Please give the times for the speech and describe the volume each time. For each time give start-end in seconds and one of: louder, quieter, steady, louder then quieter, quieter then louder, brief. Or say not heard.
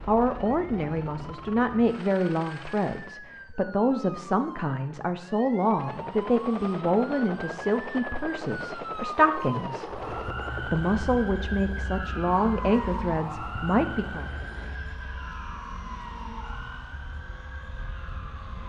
0.1-14.2 steady.